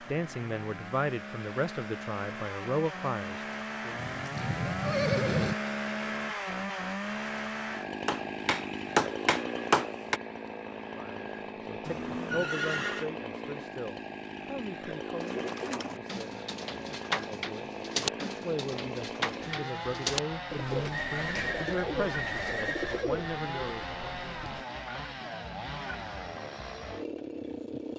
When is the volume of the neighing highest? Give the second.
5 s.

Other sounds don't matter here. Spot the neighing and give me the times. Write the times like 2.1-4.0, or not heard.
4.0-5.5, 11.8-13.1, 20.9-23.1.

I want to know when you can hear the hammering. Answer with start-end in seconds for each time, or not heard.
8.1-10.2.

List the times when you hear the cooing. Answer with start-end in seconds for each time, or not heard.
15.2-24.6.